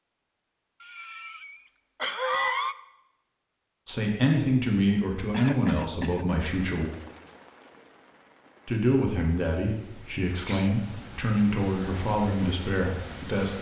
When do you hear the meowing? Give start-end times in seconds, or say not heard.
not heard.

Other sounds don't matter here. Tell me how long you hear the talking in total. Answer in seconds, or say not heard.
8 s.